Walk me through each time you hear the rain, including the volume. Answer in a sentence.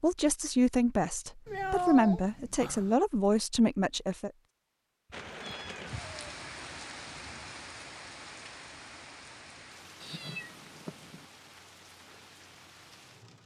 You can hear the rain from 5.1 to 13.4 s, getting quieter.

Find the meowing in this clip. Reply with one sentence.
The meowing can be heard from 1.4 to 2.9 s, from 5.1 to 6.3 s and from 10.0 to 11.2 s.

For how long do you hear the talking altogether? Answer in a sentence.
You can hear the talking for 4 seconds altogether.